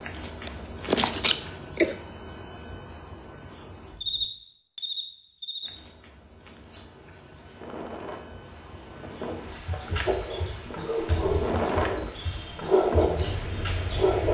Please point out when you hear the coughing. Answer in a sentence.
The coughing can be heard from 0.5 to 2.0 s.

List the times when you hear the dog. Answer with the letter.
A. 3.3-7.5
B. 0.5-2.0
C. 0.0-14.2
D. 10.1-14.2
D.